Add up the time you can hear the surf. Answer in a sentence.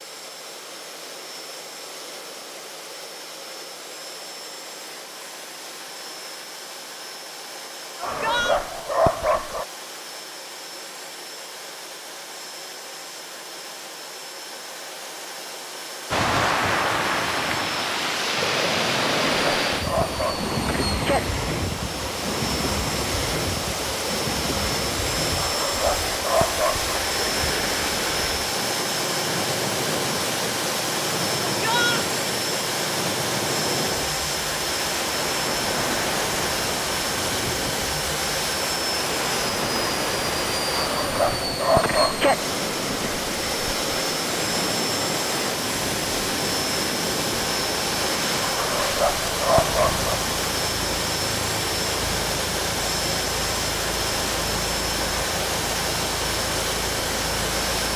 You can hear the surf for 42 seconds altogether.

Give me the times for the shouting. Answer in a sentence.
The shouting can be heard from 8.0 to 8.6 s and from 31.6 to 32.0 s.